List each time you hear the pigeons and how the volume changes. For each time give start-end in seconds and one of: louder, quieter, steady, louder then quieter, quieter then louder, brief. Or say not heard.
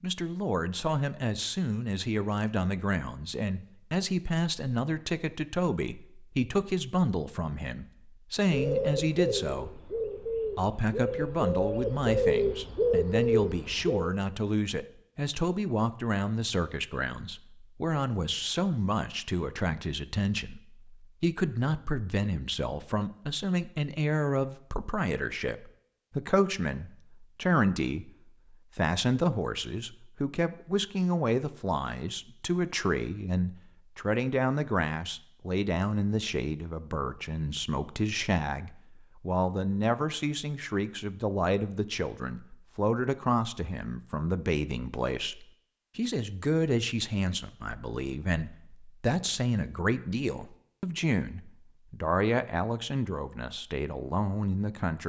8.5-14.2 louder.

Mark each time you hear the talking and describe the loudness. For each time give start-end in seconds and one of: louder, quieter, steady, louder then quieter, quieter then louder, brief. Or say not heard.
0.0-28.1 steady
28.8-55.0 steady.